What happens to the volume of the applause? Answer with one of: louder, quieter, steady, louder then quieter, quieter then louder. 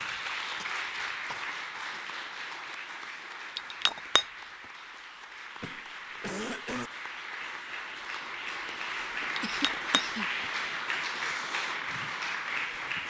quieter then louder.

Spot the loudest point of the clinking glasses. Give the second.
4 s.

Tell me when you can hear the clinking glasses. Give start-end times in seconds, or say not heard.
3.5-4.2, 9.3-10.5.